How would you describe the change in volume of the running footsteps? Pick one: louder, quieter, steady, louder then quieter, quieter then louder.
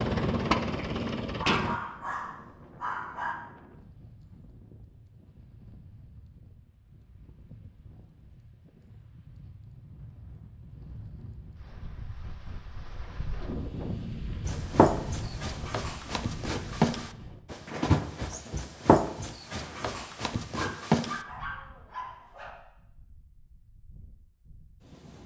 louder then quieter.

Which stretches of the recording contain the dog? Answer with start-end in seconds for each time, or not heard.
1.4-3.4, 20.5-22.5.